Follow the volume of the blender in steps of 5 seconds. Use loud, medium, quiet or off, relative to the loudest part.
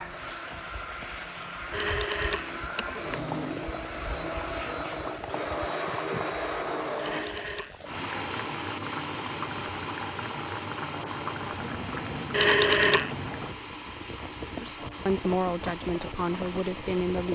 loud, loud, medium, medium.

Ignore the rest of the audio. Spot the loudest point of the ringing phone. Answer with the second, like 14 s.
13 s.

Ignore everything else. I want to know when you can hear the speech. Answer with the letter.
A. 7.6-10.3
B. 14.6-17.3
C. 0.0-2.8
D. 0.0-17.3
B.